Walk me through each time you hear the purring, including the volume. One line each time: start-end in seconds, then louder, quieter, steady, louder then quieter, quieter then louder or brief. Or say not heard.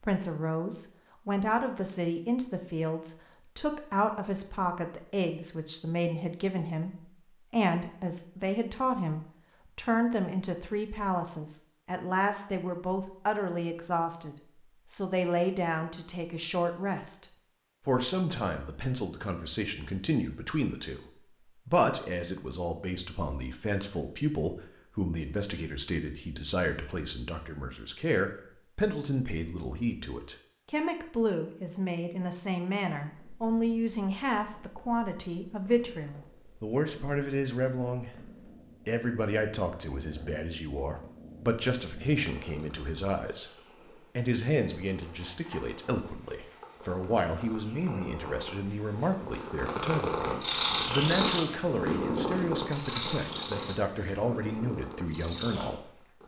33.0-56.2 louder.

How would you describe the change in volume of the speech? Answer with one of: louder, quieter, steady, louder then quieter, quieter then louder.
steady.